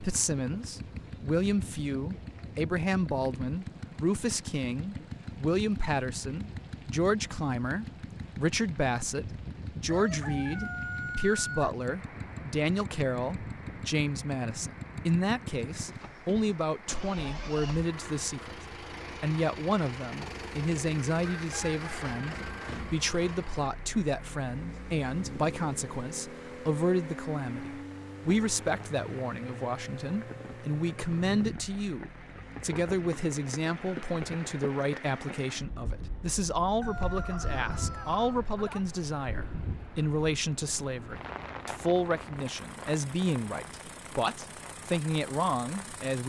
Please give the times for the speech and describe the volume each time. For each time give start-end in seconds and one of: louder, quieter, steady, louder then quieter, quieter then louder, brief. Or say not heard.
0.0-46.2 steady.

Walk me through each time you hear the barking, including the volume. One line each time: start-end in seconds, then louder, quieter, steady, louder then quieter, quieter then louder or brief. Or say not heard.
not heard.